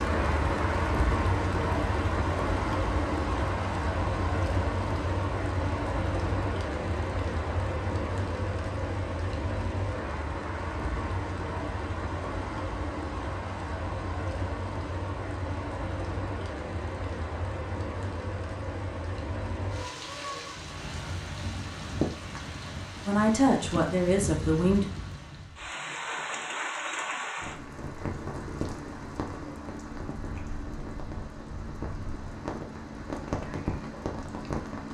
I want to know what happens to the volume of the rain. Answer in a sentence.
The volume of the rain goes down.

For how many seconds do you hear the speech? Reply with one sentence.
The speech can be heard for 2 seconds in total.